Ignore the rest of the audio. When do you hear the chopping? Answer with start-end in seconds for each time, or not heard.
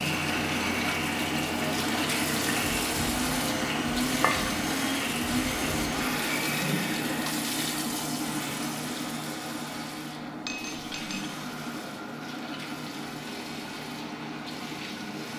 not heard.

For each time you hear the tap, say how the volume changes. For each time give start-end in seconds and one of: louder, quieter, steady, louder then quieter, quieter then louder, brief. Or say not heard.
0.0-15.3 quieter.